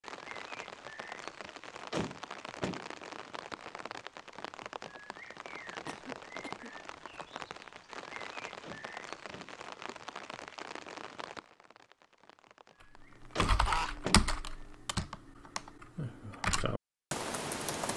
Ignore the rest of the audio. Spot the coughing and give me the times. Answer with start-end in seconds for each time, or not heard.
5.8-7.2, 13.3-13.9.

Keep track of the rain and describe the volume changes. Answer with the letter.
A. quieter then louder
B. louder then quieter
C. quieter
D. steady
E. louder
C.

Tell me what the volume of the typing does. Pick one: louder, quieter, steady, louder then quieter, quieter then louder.
quieter then louder.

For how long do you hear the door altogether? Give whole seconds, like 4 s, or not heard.
3 s.